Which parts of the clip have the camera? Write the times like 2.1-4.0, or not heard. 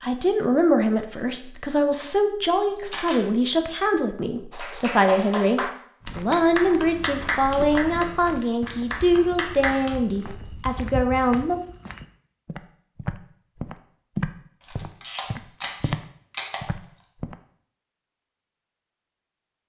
2.8-3.2, 14.6-16.6.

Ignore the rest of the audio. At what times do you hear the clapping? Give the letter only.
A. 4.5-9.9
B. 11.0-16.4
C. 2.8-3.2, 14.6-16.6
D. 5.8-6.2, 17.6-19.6
A.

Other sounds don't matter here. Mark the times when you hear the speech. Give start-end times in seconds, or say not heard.
0.0-11.6.